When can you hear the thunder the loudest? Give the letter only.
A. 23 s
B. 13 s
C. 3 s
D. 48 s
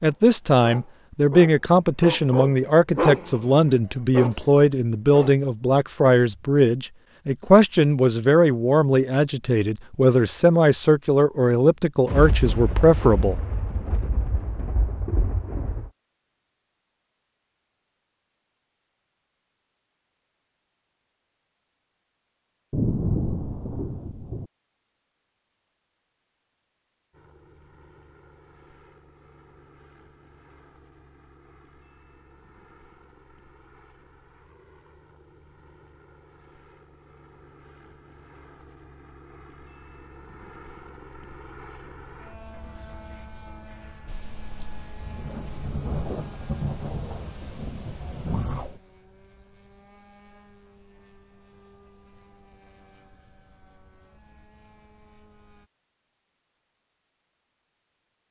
A.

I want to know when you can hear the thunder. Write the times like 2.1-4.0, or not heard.
12.1-15.9, 22.7-24.4, 44.0-48.8.